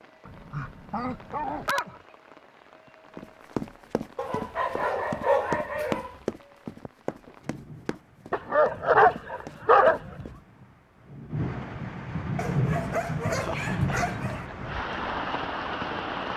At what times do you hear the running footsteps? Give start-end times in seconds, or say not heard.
3.1-10.4.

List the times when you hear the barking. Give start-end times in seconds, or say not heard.
0.2-2.0, 4.2-6.2, 8.3-10.3, 12.3-14.4.